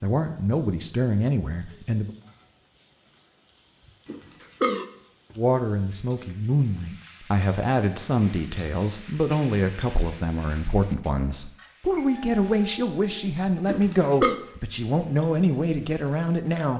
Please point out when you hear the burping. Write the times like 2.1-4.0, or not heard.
4.0-4.8, 13.7-14.3.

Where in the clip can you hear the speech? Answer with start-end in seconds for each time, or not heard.
0.0-2.1, 5.3-16.7.